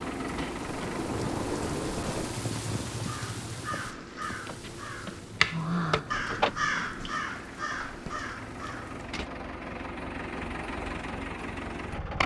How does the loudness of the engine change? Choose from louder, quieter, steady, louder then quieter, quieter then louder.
quieter then louder.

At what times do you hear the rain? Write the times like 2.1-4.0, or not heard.
0.0-9.2.